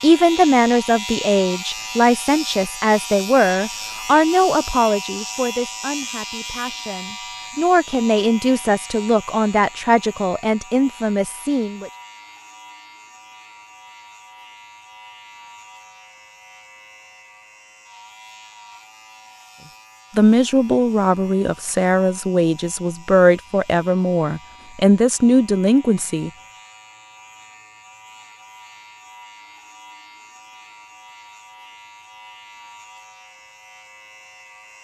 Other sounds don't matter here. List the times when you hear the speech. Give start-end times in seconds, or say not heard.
0.0-11.9, 20.1-26.3.